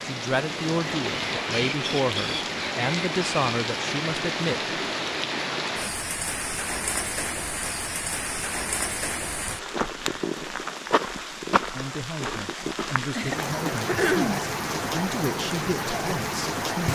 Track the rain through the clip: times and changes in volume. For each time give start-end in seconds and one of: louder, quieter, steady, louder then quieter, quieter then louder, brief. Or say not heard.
0.0-16.9 steady.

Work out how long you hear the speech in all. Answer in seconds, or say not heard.
10 s.